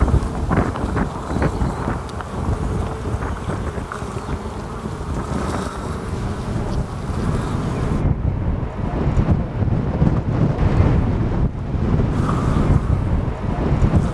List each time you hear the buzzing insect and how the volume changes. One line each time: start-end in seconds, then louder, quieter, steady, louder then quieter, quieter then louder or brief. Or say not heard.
0.0-8.1 steady
12.1-14.0 brief.